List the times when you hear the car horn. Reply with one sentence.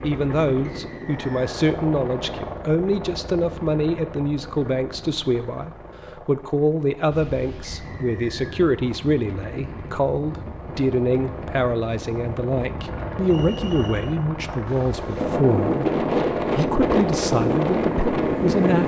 The car horn can't be heard in this clip.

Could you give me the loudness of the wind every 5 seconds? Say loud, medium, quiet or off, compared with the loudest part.
off, quiet, quiet, loud.